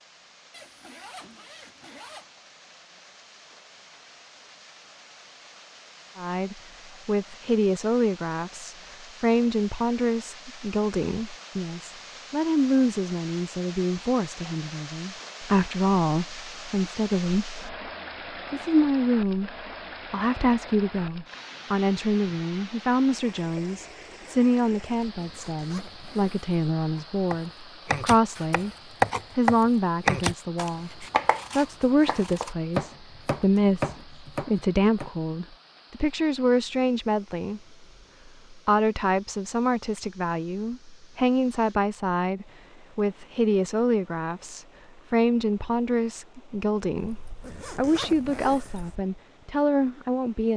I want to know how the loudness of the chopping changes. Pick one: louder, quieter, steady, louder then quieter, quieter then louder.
quieter.